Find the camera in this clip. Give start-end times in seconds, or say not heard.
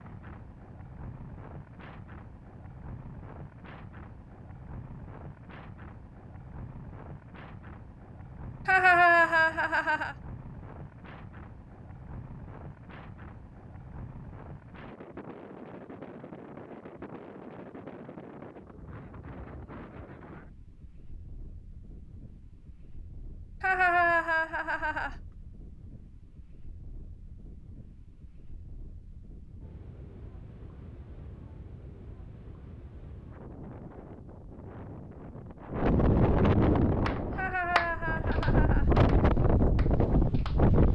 not heard.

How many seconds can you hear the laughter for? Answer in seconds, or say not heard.
5 s.